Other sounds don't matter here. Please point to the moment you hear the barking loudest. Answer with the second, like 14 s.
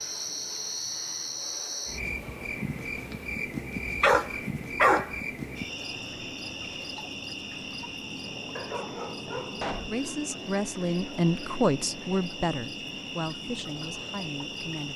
5 s.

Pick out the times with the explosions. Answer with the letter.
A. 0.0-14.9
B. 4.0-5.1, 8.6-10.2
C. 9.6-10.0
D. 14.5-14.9
C.